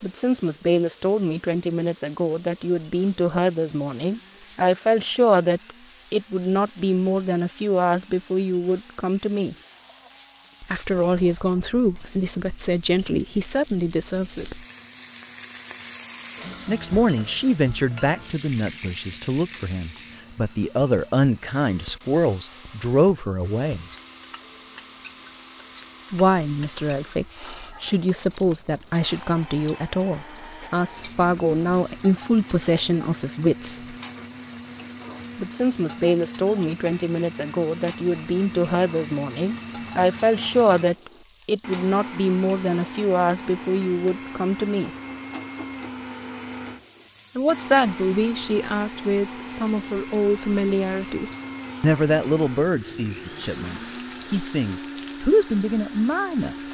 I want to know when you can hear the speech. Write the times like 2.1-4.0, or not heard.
0.0-9.6, 10.6-14.7, 16.6-23.9, 26.1-34.0, 35.4-44.9, 47.4-56.6.